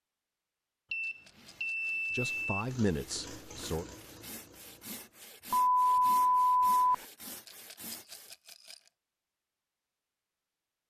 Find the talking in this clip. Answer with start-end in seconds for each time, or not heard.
2.1-3.9.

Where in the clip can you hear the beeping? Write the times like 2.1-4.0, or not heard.
0.9-2.6, 5.5-7.0.